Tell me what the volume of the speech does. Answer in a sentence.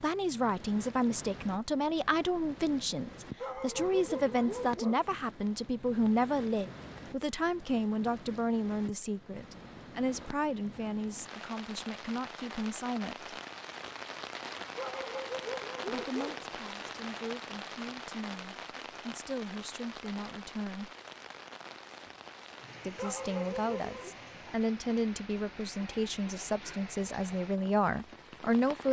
The volume of the speech goes down, then up.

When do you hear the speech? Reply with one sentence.
You can hear the speech from 0.0 to 13.3 s, from 15.8 to 20.9 s and from 22.8 to 28.8 s.